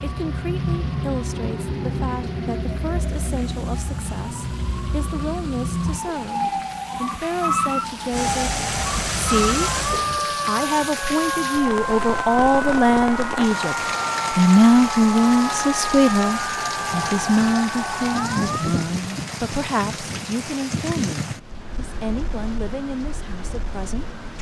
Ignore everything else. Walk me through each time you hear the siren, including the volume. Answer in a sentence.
The siren can be heard from 0.0 to 18.9 s, at a steady volume.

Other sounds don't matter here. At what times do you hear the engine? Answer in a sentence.
You can hear the engine from 0.0 to 10.1 s.